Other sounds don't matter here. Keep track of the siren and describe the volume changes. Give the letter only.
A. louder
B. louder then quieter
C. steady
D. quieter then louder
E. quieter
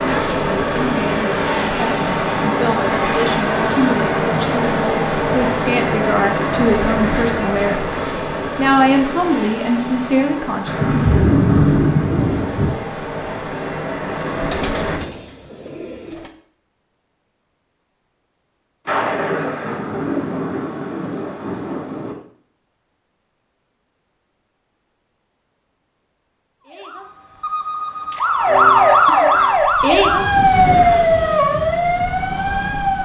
B.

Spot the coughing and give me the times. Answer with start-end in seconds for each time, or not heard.
not heard.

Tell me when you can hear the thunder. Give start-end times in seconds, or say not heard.
10.7-12.7, 18.9-22.1.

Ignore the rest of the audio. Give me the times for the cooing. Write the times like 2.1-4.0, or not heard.
14.3-16.3.